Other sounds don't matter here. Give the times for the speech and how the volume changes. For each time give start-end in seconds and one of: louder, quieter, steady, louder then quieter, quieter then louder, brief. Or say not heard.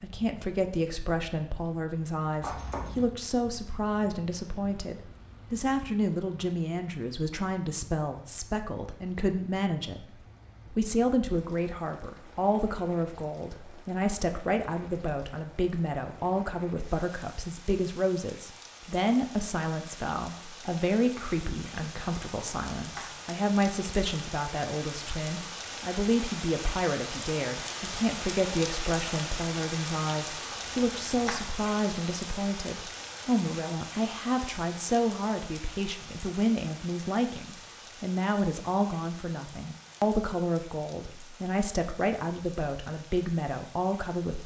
0.0-44.4 steady.